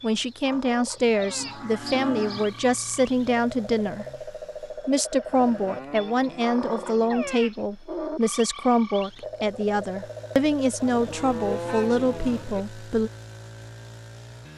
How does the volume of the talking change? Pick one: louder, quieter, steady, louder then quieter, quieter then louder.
steady.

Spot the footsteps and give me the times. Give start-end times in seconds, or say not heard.
not heard.